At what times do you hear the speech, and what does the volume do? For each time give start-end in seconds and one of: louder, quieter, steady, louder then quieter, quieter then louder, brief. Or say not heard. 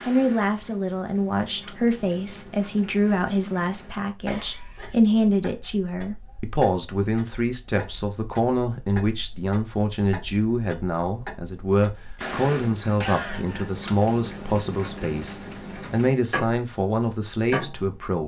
0.0-18.2 steady.